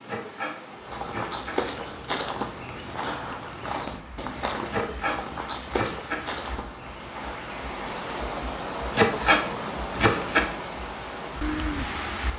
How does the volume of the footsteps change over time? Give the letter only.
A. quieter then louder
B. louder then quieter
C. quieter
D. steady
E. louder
C.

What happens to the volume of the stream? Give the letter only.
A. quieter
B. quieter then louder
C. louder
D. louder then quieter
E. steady
C.